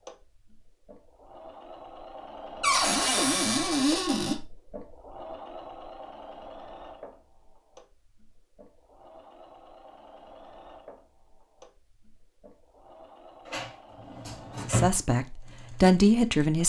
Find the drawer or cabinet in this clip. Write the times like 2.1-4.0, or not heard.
2.6-4.3, 13.4-14.9.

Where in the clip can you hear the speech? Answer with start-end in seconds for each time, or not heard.
14.7-16.6.